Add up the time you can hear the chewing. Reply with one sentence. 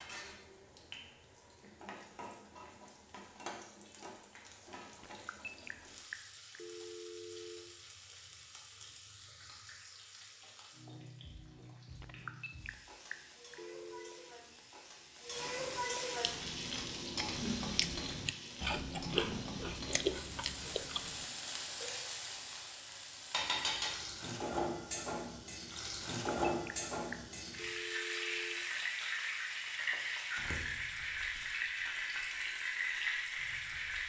You can hear the chewing for 5 seconds altogether.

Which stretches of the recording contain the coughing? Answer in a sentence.
The coughing can't be heard in this clip.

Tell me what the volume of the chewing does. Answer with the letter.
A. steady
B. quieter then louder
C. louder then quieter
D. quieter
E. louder
E.